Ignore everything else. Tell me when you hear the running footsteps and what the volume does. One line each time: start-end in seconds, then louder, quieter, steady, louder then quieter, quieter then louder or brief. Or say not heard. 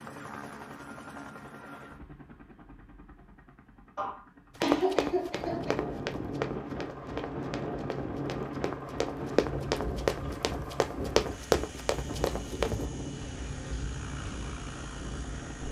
4.6-12.8 quieter then louder.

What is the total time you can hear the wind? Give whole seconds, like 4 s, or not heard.
10 s.